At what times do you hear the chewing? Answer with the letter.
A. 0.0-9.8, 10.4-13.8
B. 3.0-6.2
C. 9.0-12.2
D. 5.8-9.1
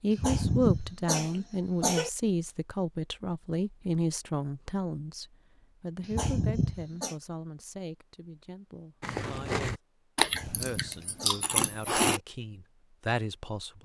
C.